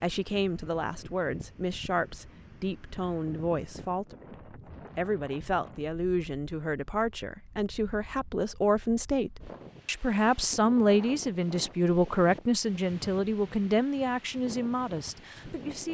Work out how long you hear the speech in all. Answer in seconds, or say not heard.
16 s.